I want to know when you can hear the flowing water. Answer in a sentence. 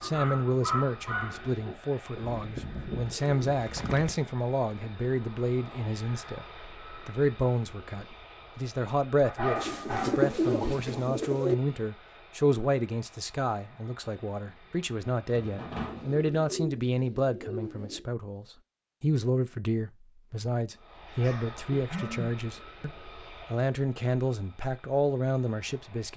You can't hear the flowing water here.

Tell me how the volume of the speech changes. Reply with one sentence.
The loudness of the speech stays about the same.